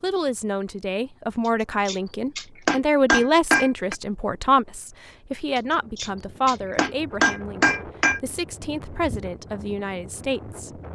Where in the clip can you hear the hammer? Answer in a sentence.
The hammer can be heard from 1.4 to 4.0 s and from 5.5 to 8.2 s.